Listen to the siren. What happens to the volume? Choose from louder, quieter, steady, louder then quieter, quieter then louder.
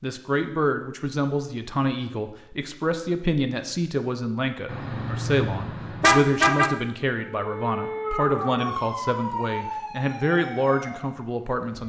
quieter.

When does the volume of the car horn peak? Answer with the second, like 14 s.
6 s.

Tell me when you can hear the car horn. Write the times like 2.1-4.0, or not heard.
4.7-6.7.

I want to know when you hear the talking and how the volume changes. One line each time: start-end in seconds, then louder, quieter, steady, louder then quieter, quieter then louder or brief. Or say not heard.
0.0-11.8 steady.